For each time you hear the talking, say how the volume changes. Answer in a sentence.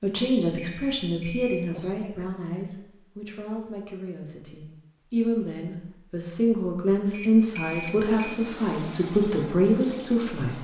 You can hear the talking from 0.0 to 10.5 s, getting quieter then louder.